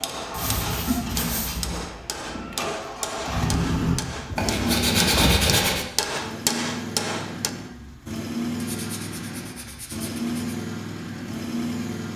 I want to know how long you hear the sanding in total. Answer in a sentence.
The sanding can be heard for 5 seconds in total.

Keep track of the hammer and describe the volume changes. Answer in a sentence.
The loudness of the hammer goes up.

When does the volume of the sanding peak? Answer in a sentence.
The loudest moment of the sanding is at 5 seconds.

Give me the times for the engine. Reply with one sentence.
The engine can be heard from 0.0 to 12.1 s.